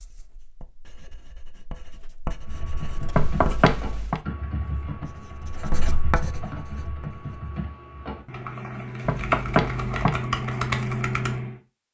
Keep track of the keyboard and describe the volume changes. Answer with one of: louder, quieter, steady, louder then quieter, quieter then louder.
louder.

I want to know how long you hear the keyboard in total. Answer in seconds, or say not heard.
9 s.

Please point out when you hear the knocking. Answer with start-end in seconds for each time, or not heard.
3.1-4.2, 9.1-10.2.